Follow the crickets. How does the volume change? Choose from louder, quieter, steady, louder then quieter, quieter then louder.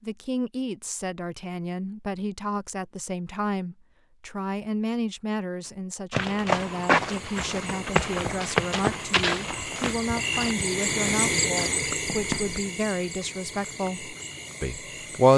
louder then quieter.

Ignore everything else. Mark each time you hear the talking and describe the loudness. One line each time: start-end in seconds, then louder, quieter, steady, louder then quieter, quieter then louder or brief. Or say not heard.
0.0-15.3 steady.